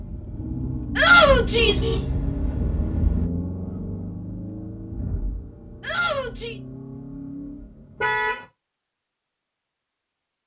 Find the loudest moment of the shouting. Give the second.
1 s.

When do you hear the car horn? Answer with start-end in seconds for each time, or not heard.
1.2-3.2, 8.0-8.4.